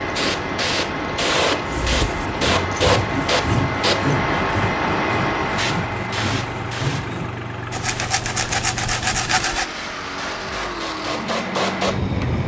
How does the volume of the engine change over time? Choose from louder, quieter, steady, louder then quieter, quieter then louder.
steady.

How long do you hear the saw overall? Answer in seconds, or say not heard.
8 s.